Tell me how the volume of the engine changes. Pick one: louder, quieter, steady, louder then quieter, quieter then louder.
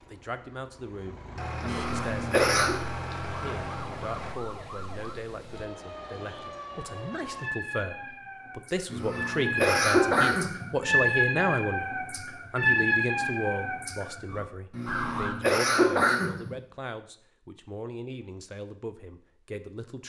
louder.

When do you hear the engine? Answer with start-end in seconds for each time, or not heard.
0.0-4.4.